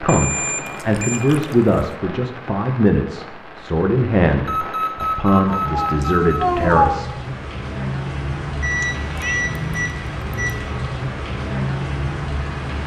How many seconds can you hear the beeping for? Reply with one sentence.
The beeping can be heard for 5 seconds in total.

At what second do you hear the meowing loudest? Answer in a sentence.
The volume of the meowing peaks at 7 seconds.